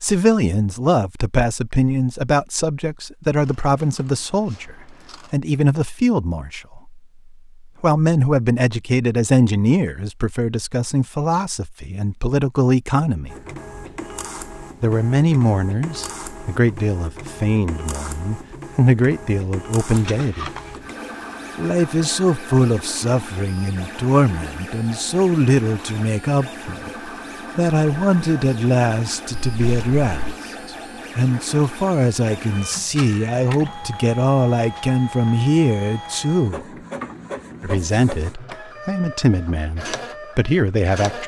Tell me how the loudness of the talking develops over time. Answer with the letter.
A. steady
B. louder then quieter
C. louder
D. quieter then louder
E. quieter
A.